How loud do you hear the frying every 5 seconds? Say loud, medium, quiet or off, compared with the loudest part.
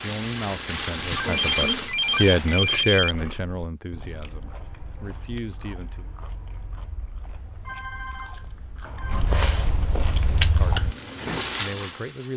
loud, off, loud.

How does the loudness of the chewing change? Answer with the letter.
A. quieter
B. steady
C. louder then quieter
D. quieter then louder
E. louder
D.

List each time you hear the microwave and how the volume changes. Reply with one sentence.
You can't hear the microwave here.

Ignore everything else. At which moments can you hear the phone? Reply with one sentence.
The phone can be heard from 1.1 to 3.1 s and from 7.2 to 9.2 s.